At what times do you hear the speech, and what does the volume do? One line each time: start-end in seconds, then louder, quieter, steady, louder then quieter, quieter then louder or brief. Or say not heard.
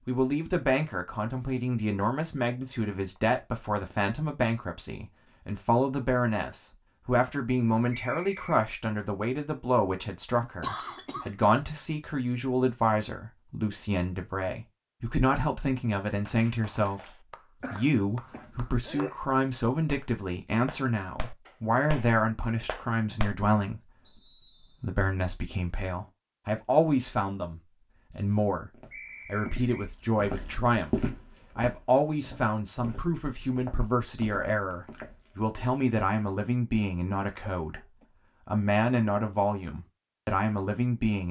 0.1-41.2 steady.